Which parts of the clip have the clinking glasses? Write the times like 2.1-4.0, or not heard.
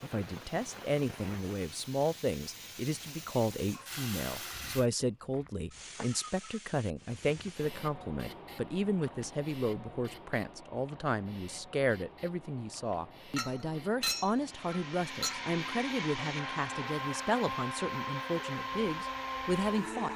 13.3-15.4.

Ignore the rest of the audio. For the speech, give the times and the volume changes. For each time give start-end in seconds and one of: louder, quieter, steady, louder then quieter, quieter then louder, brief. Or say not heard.
0.0-20.1 steady.